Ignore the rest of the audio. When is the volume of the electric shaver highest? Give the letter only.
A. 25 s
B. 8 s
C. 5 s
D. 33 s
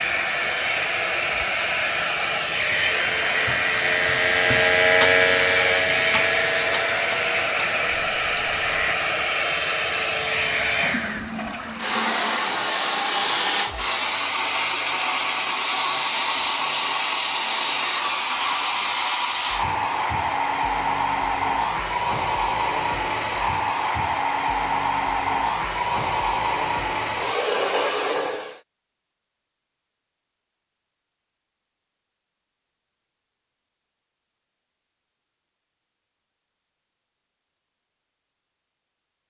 C.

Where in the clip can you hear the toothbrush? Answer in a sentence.
You can't hear the toothbrush here.